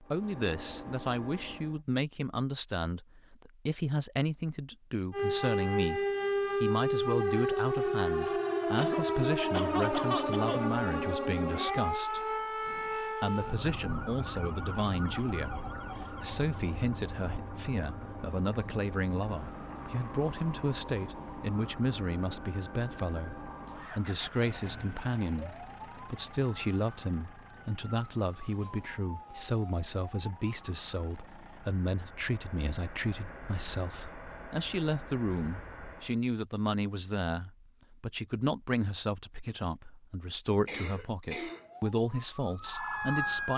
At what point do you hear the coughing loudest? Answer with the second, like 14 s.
10 s.